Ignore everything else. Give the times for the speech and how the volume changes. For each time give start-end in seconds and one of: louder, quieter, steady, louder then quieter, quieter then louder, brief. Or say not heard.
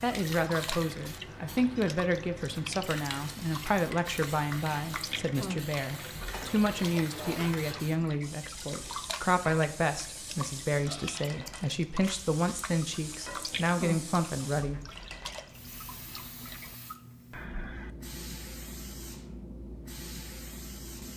0.0-14.8 steady.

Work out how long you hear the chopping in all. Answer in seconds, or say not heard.
not heard.